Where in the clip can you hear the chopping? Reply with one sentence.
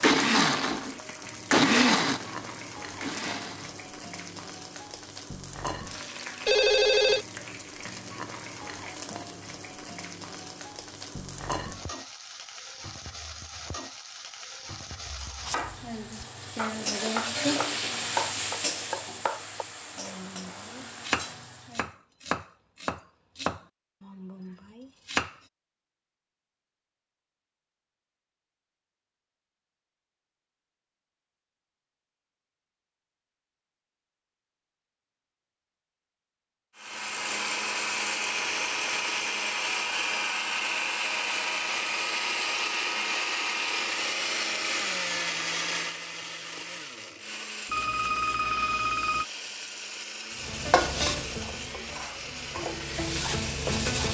The chopping can be heard from 15.1 to 25.4 s.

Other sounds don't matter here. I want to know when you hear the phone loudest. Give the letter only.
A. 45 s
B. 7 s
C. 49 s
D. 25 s
B.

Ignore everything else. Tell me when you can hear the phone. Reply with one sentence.
You can hear the phone from 6.5 to 7.2 s and from 47.6 to 49.2 s.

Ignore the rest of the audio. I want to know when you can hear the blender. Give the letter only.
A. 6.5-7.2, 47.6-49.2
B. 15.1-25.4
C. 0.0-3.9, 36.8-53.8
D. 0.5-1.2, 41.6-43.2
C.